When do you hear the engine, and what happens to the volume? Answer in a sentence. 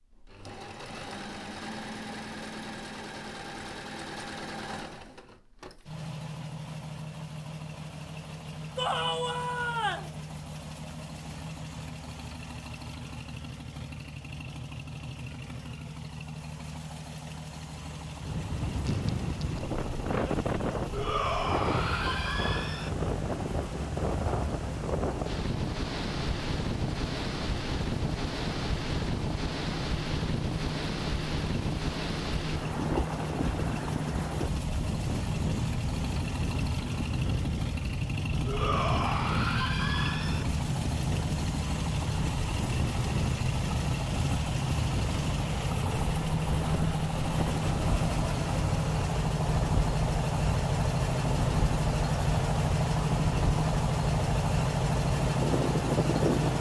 The engine can be heard from 0.0 to 56.5 s, getting louder.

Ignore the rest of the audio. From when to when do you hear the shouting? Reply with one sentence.
The shouting can be heard from 8.8 to 10.1 s, from 20.9 to 22.9 s and from 38.5 to 40.5 s.